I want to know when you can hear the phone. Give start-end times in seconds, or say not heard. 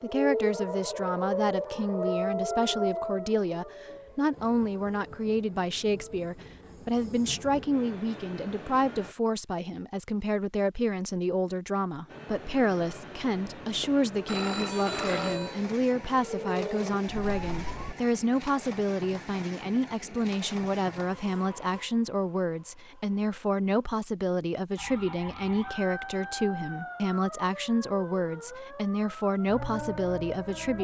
13.8-15.6.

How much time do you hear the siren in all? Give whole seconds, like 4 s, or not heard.
15 s.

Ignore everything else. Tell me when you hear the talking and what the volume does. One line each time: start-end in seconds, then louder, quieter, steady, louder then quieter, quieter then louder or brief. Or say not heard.
0.0-30.7 steady.